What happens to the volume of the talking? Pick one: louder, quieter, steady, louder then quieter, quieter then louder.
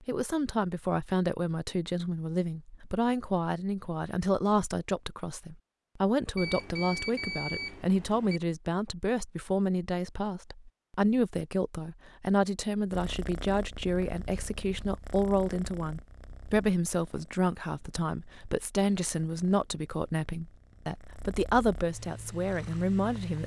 steady.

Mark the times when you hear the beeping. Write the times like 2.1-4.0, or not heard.
6.3-8.4.